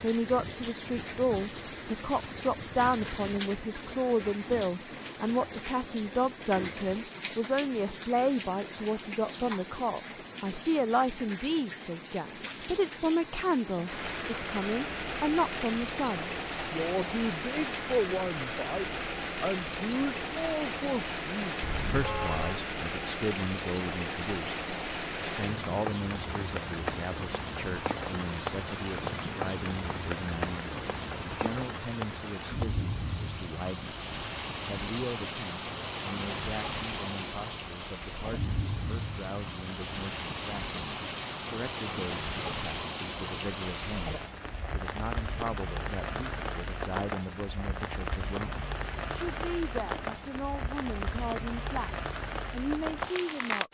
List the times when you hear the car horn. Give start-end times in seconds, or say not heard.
21.6-22.6.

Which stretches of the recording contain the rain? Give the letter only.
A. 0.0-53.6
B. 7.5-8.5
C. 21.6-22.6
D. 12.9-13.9
A.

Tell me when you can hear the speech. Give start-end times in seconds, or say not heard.
0.0-34.0, 34.6-51.9, 52.5-53.6.